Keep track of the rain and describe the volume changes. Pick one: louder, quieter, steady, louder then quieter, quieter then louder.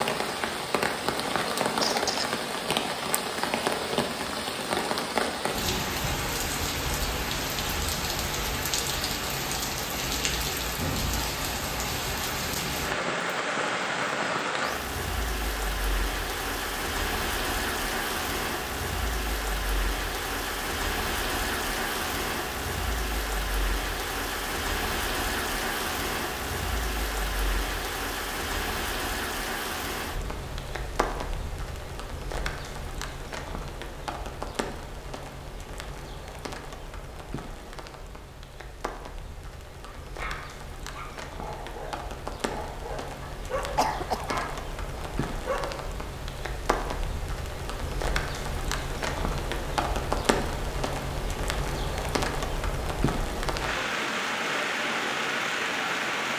quieter then louder.